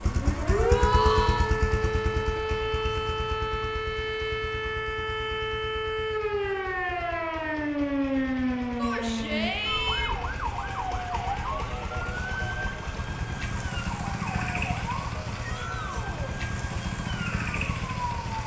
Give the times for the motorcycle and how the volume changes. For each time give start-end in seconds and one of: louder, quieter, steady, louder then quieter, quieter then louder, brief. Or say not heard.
0.0-18.4 quieter then louder.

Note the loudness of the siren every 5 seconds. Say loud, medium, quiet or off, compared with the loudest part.
loud, loud, medium, medium.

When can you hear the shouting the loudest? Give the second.
1 s.